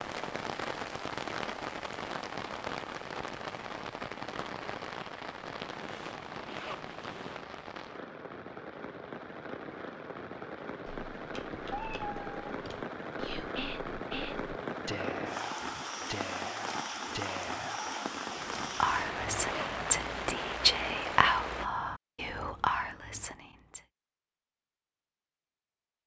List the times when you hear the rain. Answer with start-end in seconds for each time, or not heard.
0.0-21.7.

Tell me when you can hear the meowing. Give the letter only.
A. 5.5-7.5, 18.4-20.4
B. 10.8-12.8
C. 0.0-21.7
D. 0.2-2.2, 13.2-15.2
B.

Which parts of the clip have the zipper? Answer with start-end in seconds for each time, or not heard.
5.5-7.5, 18.4-20.4.